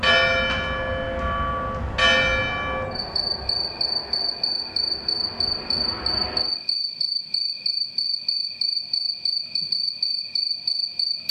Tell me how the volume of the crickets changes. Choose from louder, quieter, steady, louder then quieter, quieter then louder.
steady.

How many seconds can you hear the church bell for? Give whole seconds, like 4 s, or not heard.
3 s.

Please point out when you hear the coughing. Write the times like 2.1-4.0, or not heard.
not heard.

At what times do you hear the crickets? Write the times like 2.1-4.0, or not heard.
2.9-11.2.